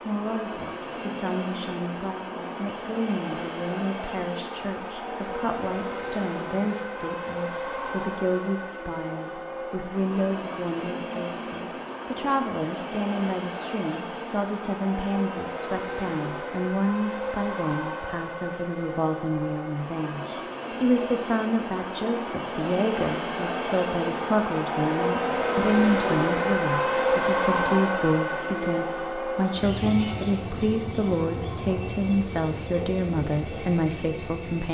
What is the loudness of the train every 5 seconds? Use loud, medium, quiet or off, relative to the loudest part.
medium, medium, medium, medium, medium, loud, medium.